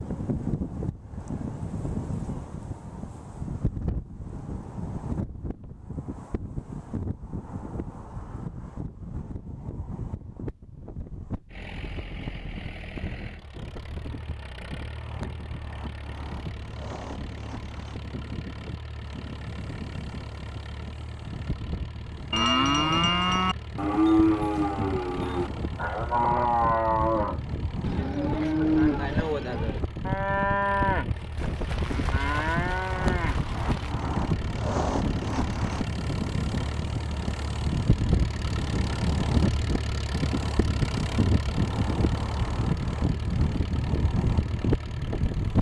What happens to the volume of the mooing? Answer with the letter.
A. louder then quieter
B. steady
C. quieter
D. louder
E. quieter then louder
C.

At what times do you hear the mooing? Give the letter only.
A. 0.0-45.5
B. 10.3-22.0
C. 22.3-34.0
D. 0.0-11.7
C.